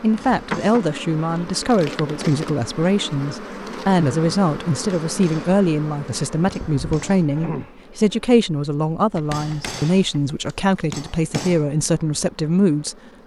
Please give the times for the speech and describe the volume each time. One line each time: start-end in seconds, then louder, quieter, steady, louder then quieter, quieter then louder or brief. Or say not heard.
0.0-12.9 steady.